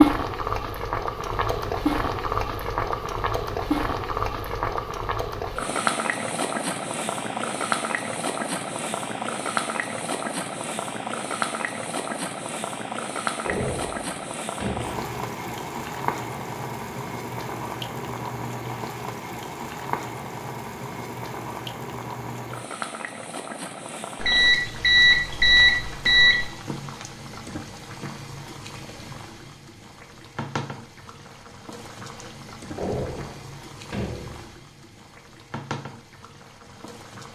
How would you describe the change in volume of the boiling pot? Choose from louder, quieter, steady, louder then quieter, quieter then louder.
quieter.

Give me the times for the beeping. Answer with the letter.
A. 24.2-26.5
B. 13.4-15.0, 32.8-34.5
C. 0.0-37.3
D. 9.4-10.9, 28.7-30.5
A.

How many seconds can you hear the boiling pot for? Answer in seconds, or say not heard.
37 s.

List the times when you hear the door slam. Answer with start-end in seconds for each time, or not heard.
13.4-15.0, 32.8-34.5.